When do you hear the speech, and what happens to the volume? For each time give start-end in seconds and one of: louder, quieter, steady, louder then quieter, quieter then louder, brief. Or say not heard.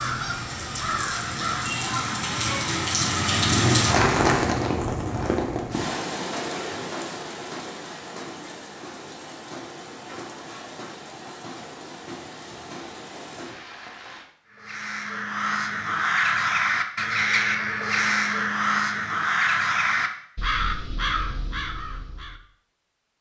not heard.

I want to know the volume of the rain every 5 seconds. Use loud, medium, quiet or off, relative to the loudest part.
loud, medium, quiet, off, off.